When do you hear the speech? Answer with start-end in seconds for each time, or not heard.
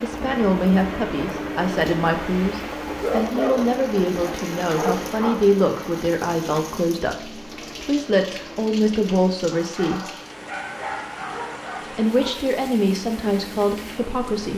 0.0-10.1, 11.8-14.5.